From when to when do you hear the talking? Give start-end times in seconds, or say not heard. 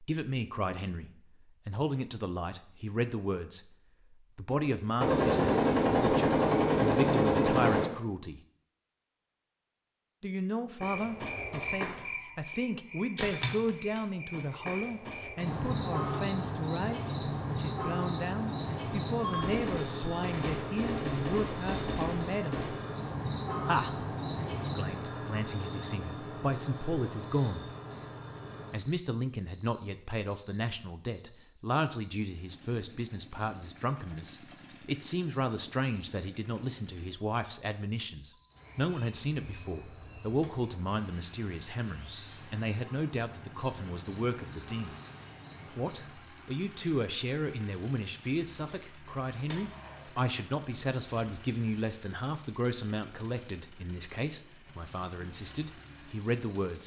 0.0-8.4, 10.2-22.6, 23.6-27.6, 28.7-45.0, 45.8-56.8.